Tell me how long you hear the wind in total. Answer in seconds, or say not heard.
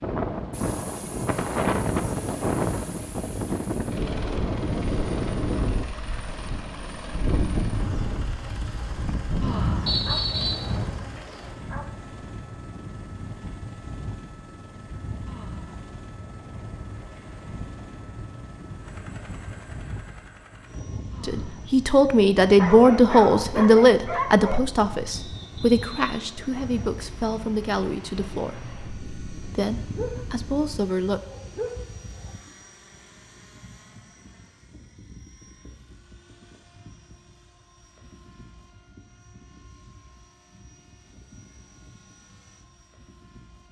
31 s.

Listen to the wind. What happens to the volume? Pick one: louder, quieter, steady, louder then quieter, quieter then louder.
quieter.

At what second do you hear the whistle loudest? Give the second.
10 s.